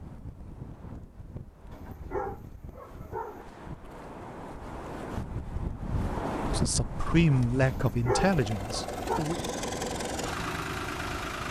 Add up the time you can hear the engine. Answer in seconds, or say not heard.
3 s.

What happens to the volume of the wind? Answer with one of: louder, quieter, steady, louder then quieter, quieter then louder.
louder then quieter.